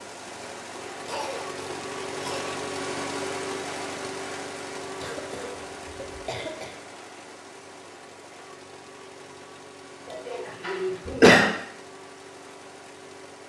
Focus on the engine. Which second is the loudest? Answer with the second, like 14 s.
3 s.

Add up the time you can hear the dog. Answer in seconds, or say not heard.
not heard.